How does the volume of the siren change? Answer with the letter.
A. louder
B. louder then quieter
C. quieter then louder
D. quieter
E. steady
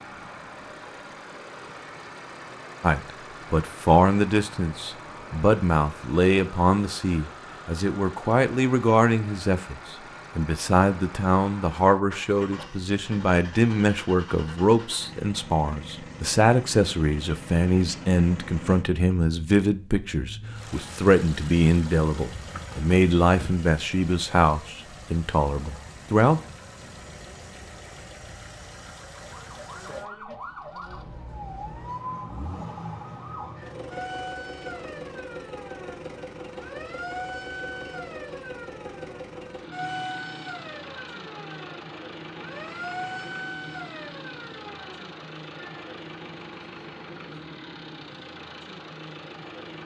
E.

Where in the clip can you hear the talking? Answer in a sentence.
The talking can be heard from 2.8 to 26.4 s.